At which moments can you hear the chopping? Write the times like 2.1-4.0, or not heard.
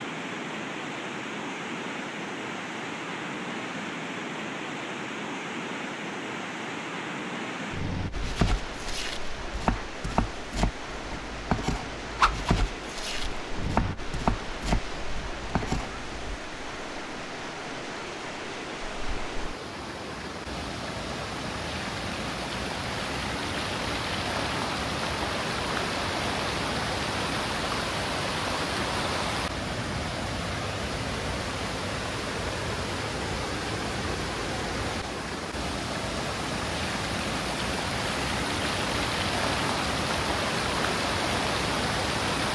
8.1-16.4.